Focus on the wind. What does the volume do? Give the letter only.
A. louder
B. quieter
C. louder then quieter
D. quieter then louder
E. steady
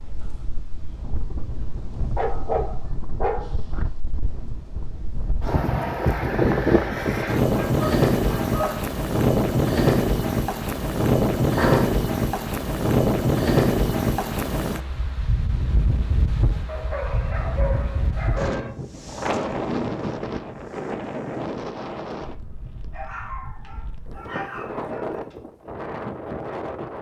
C.